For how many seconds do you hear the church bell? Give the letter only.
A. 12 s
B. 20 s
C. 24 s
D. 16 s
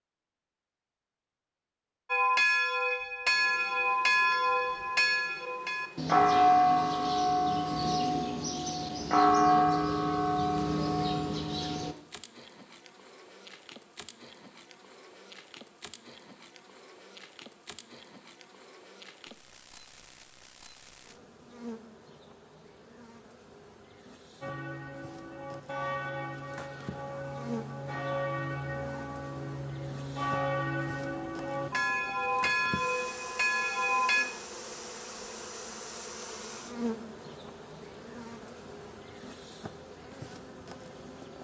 B.